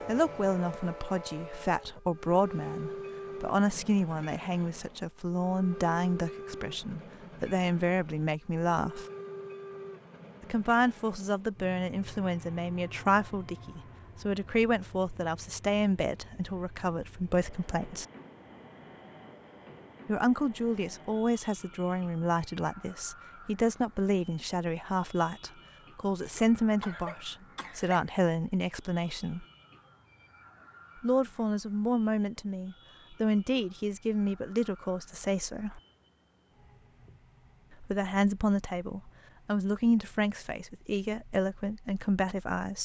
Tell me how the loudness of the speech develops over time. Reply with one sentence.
The volume of the speech stays about the same.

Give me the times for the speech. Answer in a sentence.
The speech can be heard from 0.1 to 9.1 s, from 10.4 to 18.1 s, from 20.1 to 29.4 s, from 31.0 to 35.8 s and from 37.8 to 42.7 s.